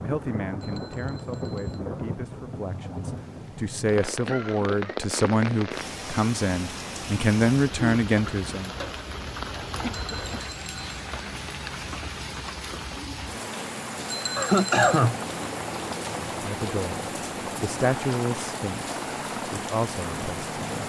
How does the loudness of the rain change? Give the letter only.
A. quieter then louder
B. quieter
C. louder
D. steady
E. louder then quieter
D.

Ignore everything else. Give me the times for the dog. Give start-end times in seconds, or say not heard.
not heard.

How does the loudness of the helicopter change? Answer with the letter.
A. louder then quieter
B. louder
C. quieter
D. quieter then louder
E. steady
E.